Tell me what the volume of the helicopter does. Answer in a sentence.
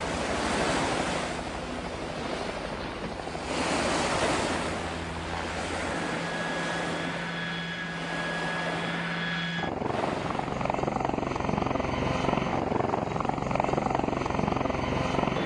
The loudness of the helicopter goes up.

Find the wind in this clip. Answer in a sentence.
The wind can be heard from 0.0 to 10.8 s.